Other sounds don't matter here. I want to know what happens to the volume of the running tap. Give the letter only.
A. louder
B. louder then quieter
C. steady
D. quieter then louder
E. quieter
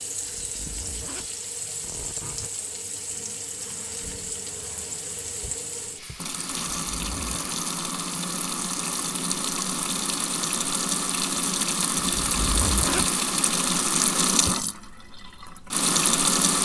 A.